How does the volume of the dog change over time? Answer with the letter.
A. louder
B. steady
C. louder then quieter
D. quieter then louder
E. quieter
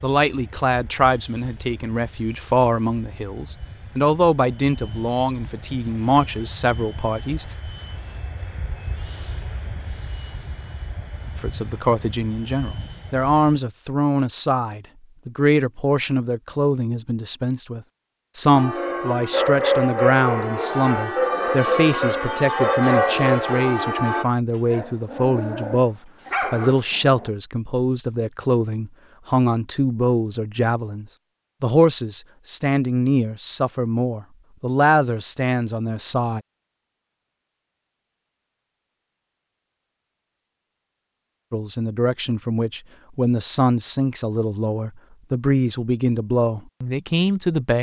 D.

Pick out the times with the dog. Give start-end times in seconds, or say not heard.
18.8-27.3.